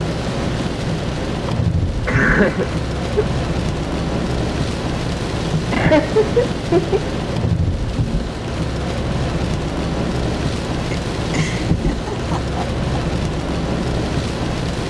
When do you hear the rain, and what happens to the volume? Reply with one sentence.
The rain can be heard from 0.0 to 14.8 s, at a steady volume.